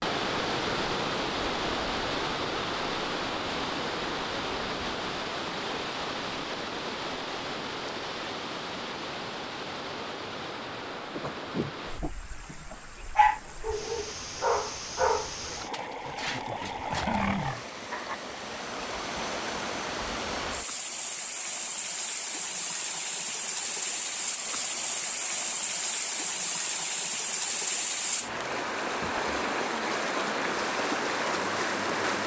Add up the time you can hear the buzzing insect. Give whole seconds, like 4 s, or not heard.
not heard.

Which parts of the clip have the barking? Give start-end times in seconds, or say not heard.
11.1-18.1.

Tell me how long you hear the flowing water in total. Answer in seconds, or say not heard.
32 s.